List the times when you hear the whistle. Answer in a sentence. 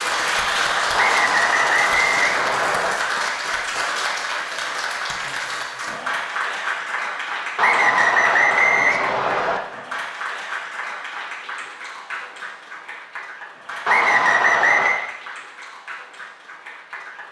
The whistle can be heard from 0.9 to 3.0 s, from 7.5 to 9.6 s and from 13.8 to 15.0 s.